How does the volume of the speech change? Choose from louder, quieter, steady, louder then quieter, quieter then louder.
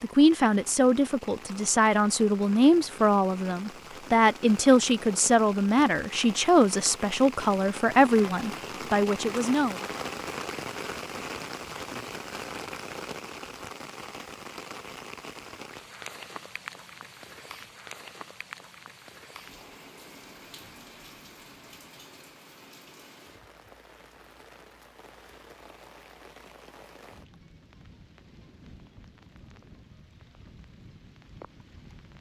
steady.